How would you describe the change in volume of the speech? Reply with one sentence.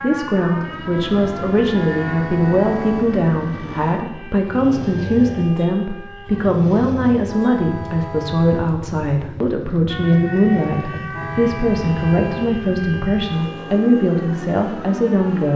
The loudness of the speech stays about the same.